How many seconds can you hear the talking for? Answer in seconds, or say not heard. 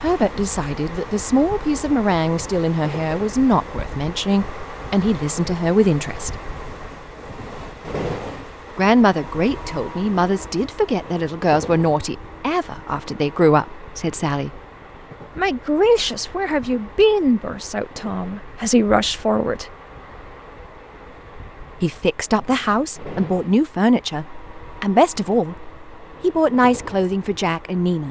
23 s.